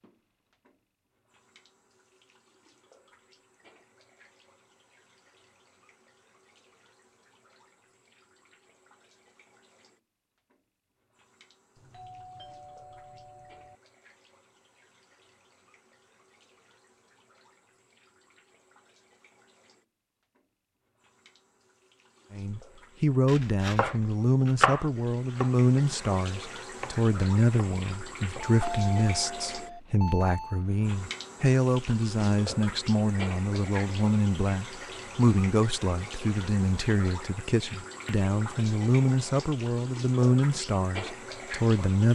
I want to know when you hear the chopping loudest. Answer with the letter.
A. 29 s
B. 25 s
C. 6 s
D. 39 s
B.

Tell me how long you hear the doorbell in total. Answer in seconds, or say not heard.
4 s.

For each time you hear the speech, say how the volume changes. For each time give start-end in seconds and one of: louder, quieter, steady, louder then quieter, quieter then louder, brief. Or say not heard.
22.3-42.0 steady.